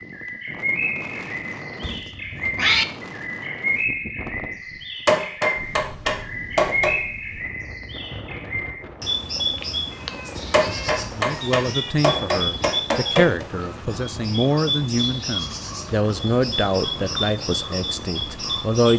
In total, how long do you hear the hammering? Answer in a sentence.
The hammering can be heard for 5 seconds in total.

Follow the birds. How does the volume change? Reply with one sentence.
The loudness of the birds stays about the same.